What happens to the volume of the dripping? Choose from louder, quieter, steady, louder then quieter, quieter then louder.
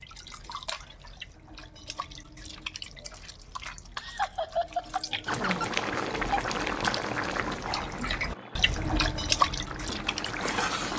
louder.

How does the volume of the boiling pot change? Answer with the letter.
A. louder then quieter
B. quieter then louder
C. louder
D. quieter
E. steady
B.